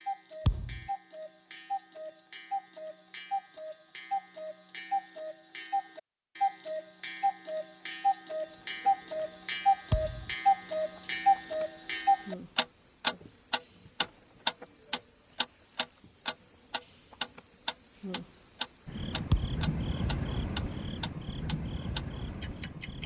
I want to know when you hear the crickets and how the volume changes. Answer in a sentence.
The crickets can be heard from 8.4 to 23.0 s, at a steady volume.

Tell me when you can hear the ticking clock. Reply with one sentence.
You can hear the ticking clock from 0.0 to 23.0 s.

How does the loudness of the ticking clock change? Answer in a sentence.
The volume of the ticking clock goes up, then down.